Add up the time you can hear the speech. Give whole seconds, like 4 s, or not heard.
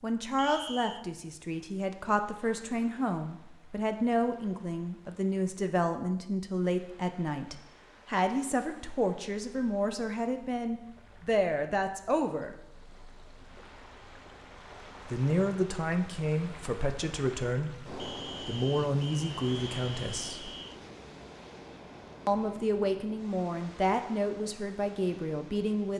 22 s.